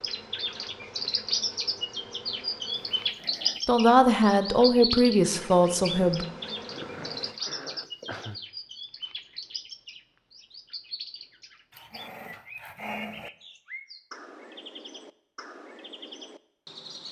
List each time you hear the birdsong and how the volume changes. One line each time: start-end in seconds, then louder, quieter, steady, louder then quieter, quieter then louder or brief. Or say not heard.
0.0-17.0 quieter.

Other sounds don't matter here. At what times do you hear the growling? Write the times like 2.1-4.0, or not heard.
2.7-3.8, 6.7-8.4, 11.7-13.3.